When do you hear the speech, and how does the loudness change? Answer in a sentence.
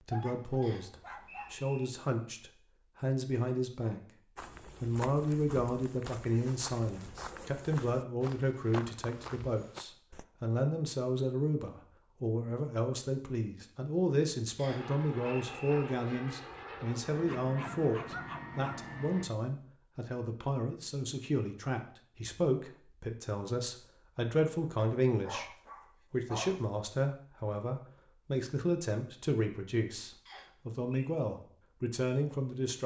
The speech can be heard from 0.0 to 4.0 s, getting quieter then louder; and from 4.8 to 32.8 s, at a steady volume.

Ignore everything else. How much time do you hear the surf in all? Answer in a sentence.
The surf can't be heard in this clip.